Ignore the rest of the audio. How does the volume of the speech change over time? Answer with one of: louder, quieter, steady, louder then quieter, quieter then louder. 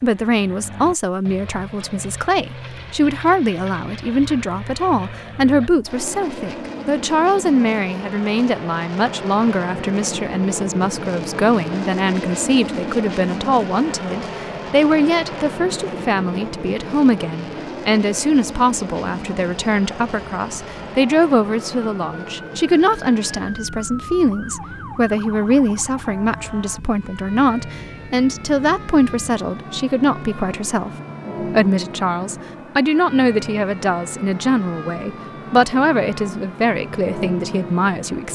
steady.